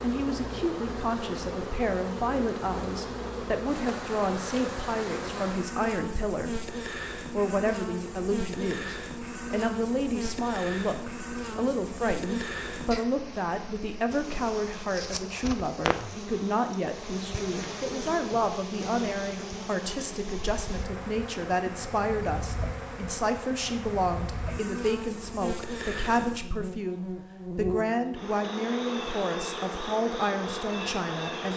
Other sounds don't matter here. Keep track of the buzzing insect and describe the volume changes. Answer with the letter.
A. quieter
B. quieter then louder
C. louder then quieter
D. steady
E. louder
D.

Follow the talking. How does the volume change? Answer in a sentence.
The loudness of the talking stays about the same.